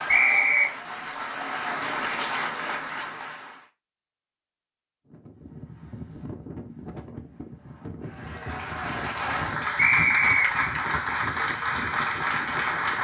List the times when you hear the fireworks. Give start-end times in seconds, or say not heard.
not heard.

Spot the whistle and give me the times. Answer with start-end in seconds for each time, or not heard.
0.1-0.7, 9.8-10.5.